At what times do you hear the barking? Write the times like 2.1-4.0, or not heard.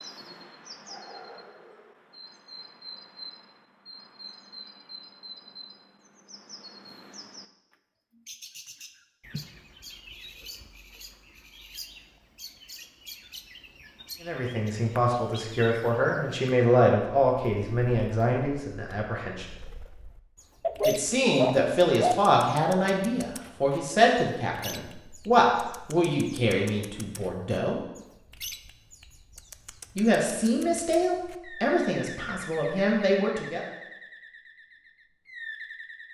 20.6-22.2.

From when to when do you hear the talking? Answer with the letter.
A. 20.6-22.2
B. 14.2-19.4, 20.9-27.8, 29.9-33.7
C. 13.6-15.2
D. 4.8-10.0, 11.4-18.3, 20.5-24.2
B.